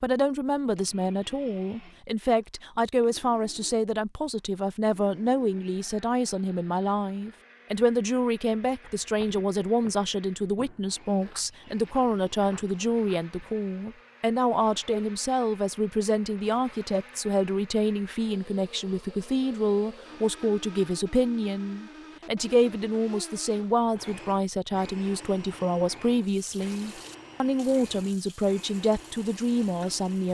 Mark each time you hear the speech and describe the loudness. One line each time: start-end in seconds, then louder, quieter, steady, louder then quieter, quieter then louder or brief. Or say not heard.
0.0-30.2 steady.